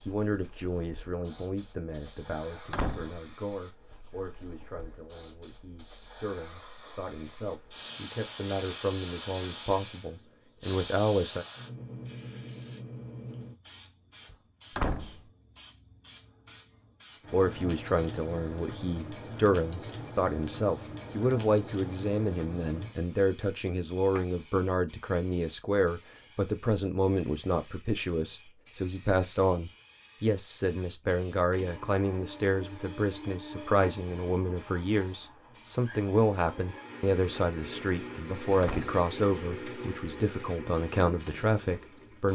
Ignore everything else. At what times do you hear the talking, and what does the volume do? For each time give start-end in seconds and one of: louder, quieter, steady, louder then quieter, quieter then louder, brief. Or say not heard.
0.0-11.4 quieter then louder
17.3-42.3 steady.